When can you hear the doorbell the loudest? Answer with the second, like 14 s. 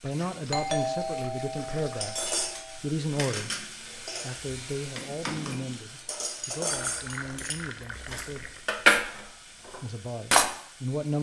1 s.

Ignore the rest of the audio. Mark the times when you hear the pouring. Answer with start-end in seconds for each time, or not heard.
0.1-2.6, 6.7-8.7.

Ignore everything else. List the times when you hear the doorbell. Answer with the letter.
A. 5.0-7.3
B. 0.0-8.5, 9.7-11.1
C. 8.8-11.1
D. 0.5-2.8
D.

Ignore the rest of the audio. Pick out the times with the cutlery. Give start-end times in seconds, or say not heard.
2.0-10.5.